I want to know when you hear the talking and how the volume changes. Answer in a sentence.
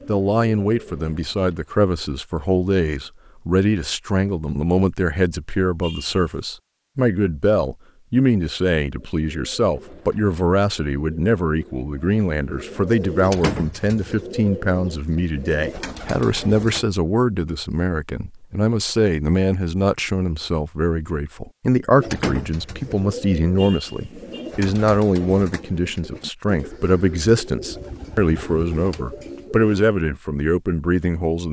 The talking can be heard from 0.1 to 31.4 s, at a steady volume.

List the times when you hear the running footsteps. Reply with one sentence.
You can't hear the running footsteps here.